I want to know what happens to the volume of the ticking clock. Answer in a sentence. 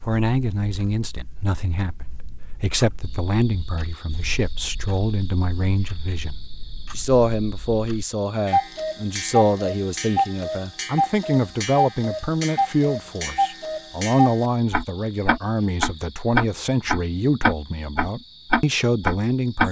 The loudness of the ticking clock goes up.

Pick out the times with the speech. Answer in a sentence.
The speech can be heard from 0.1 to 19.6 s.